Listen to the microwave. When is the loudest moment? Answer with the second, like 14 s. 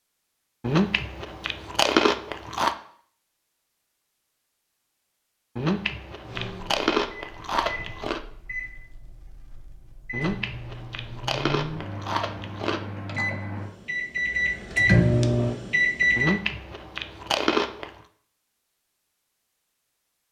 15 s.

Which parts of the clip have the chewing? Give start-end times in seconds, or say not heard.
0.6-2.8, 5.5-8.2, 10.1-12.8, 16.1-17.9.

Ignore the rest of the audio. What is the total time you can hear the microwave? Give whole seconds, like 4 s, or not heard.
10 s.